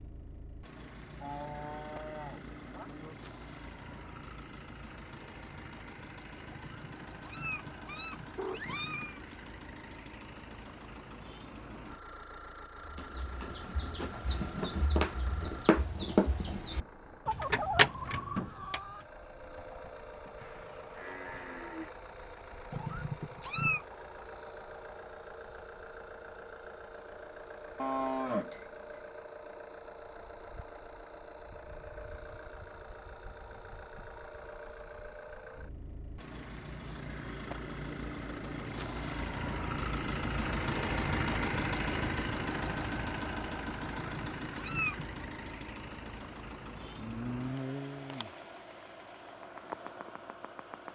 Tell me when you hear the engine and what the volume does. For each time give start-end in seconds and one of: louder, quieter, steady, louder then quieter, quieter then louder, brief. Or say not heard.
0.0-50.9 louder.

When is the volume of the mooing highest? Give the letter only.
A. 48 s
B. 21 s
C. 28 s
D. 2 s
C.